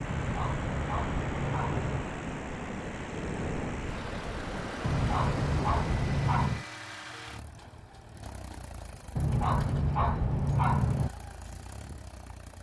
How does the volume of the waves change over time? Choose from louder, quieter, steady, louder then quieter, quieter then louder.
steady.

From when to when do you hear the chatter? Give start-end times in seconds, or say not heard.
not heard.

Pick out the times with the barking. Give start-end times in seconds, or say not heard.
0.1-2.0, 4.8-6.7, 9.2-11.1.